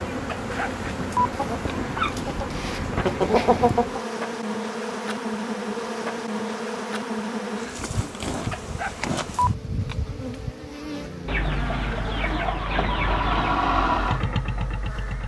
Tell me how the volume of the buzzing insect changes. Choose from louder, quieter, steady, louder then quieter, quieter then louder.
quieter.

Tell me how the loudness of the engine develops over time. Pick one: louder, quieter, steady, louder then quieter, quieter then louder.
louder then quieter.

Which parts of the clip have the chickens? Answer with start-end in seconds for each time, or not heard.
1.3-4.0, 11.2-13.6.